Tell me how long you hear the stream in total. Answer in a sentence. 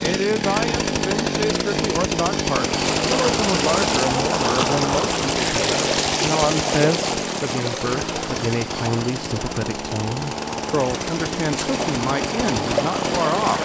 The stream can be heard for 11 seconds in total.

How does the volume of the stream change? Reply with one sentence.
The loudness of the stream goes down, then up.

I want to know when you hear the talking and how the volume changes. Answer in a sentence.
You can hear the talking from 0.0 to 13.6 s, at a steady volume.